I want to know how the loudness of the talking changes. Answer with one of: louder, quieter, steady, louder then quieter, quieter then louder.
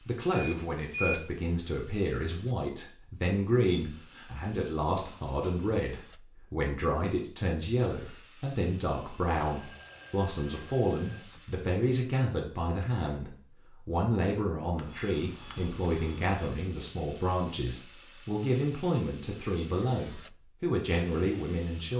steady.